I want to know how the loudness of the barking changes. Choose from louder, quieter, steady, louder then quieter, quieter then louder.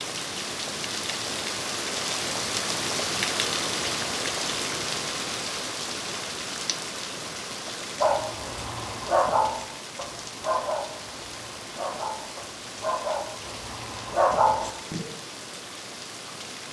quieter then louder.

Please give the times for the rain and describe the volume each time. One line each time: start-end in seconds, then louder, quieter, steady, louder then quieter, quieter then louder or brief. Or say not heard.
0.0-16.6 quieter.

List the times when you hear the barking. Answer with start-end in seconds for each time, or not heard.
8.0-15.1.